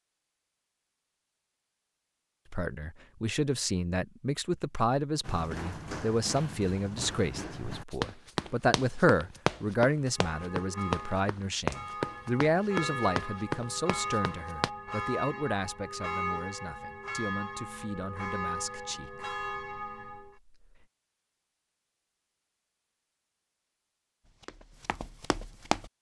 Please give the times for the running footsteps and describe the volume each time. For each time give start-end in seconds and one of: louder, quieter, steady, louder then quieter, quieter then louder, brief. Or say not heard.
5.2-14.7 louder
24.2-25.9 brief.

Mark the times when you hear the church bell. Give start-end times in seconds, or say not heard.
10.1-20.4.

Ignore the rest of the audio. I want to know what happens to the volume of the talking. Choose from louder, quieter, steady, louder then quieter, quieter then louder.
quieter.